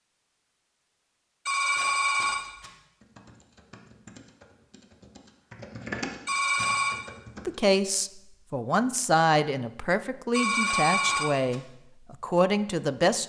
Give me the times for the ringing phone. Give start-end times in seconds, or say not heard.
1.4-2.7, 6.2-7.0, 10.3-11.6.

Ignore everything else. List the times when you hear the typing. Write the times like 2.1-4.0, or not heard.
3.0-7.8.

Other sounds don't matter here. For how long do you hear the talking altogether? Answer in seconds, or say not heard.
6 s.